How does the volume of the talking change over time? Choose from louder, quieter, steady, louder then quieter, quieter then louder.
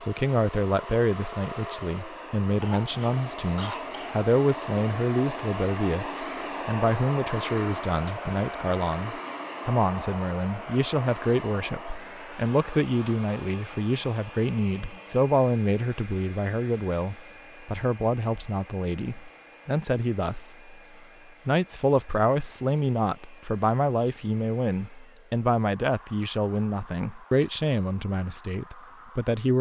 steady.